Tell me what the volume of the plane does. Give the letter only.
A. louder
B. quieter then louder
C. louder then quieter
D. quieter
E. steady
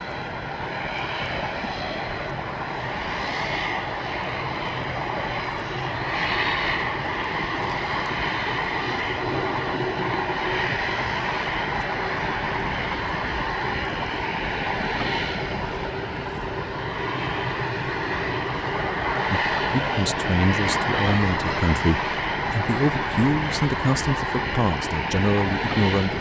E.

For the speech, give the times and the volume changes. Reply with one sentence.
You can hear the speech from 19.3 to 26.1 s, at a steady volume.